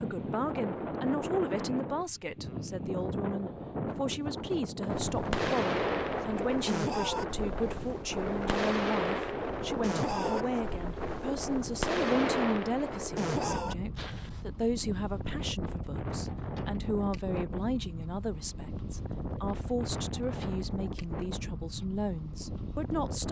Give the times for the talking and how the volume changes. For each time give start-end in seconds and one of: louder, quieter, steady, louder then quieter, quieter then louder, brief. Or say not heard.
0.0-23.2 steady.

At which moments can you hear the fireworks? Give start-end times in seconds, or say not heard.
5.1-14.4.